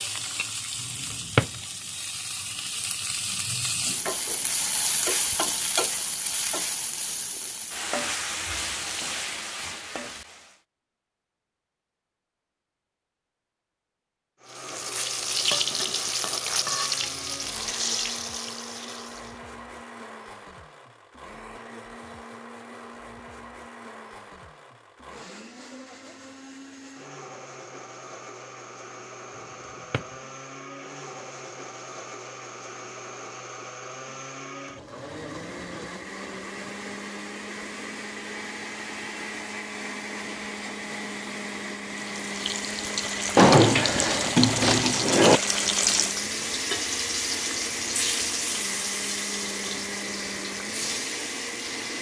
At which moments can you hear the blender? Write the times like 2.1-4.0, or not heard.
14.4-51.9.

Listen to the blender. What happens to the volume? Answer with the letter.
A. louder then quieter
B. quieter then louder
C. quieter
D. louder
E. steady
D.